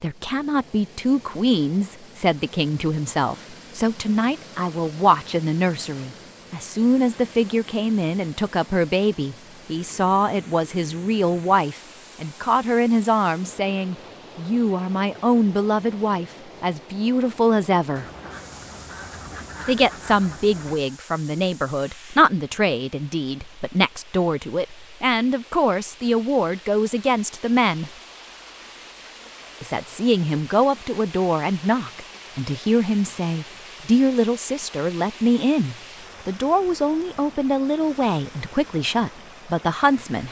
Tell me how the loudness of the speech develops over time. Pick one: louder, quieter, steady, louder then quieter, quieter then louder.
steady.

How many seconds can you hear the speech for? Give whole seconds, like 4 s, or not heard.
37 s.